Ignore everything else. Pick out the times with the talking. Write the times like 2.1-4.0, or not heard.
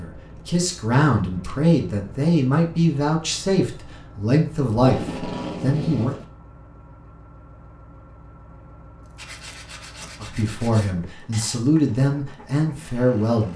0.0-6.2, 10.2-13.5.